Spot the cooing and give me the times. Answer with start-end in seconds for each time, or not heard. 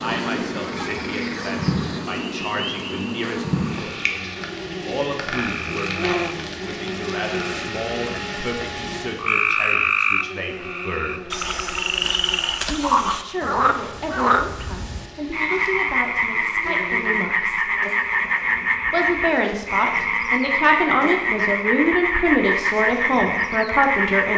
not heard.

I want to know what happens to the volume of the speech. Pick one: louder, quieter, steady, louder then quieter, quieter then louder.
louder.